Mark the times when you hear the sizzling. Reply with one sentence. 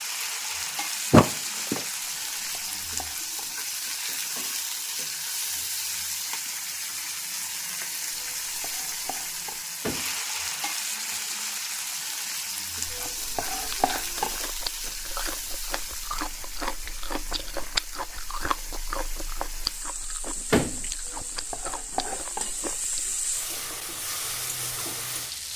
The sizzling can be heard from 0.0 to 25.5 s.